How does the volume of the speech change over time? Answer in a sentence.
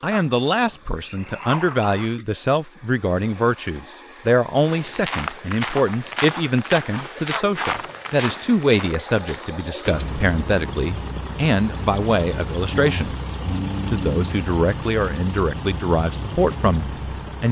The loudness of the speech stays about the same.